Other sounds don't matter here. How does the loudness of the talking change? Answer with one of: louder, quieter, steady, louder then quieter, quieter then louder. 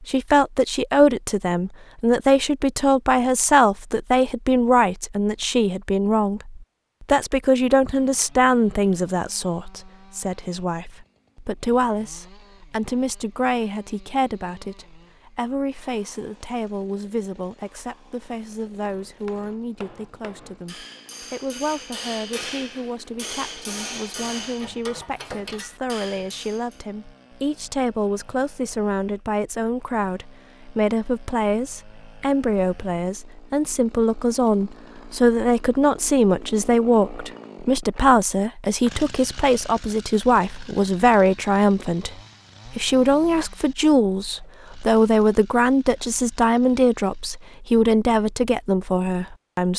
quieter then louder.